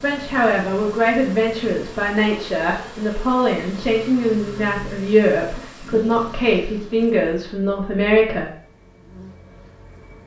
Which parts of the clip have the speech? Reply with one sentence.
The speech can be heard from 0.0 to 8.5 s.